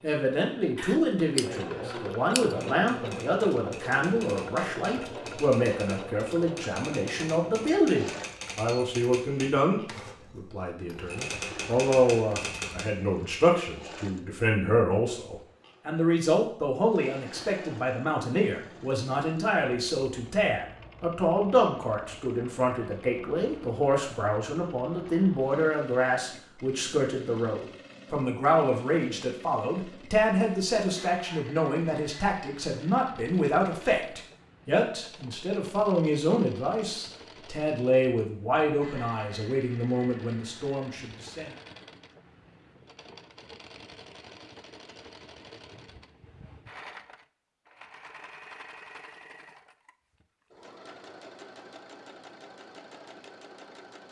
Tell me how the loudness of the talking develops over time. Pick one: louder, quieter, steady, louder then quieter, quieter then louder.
steady.